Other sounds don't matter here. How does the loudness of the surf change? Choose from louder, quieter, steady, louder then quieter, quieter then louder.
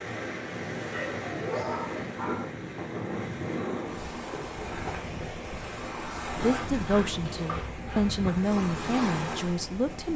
steady.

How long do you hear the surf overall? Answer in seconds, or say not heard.
10 s.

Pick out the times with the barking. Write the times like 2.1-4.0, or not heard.
0.9-2.5, 6.5-8.3.